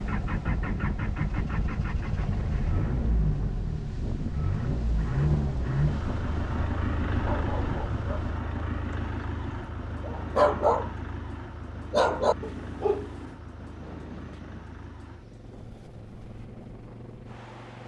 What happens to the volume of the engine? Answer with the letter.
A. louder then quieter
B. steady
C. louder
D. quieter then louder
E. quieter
E.